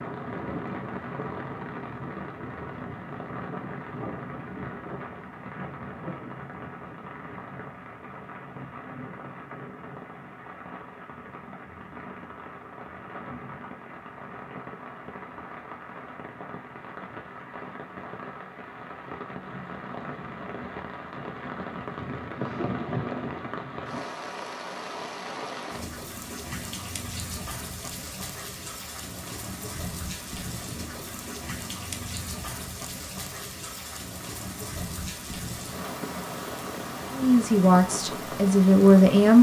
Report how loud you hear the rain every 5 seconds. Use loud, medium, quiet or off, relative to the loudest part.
loud, medium, medium, medium, loud, loud, loud, loud.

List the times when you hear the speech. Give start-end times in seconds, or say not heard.
37.1-39.3.